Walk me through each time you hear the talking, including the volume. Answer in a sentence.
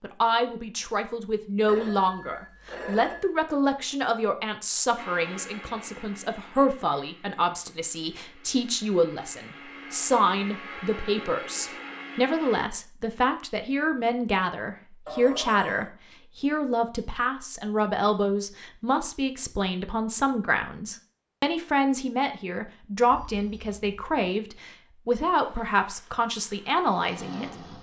The talking can be heard from 0.0 to 27.5 s, at a steady volume.